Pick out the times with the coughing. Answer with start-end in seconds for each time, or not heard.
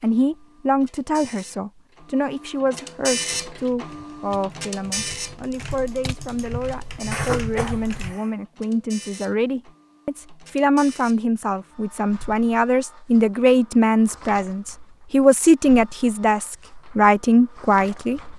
7.1-8.3.